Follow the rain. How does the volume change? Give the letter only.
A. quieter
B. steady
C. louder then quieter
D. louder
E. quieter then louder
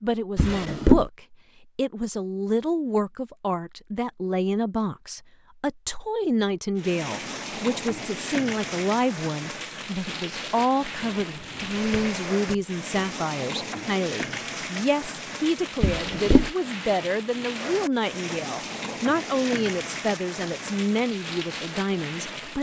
B.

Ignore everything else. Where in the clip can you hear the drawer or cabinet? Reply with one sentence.
You can hear the drawer or cabinet from 0.3 to 1.1 s, from 11.2 to 12.6 s and from 15.8 to 16.5 s.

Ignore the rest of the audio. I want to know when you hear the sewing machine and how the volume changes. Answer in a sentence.
The sewing machine can't be heard in this clip.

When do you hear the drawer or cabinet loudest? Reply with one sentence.
The volume of the drawer or cabinet peaks at 1 second.